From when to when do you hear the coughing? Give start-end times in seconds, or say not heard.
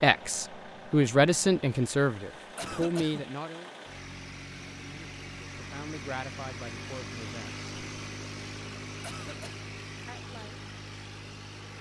2.5-3.3, 9.0-9.7.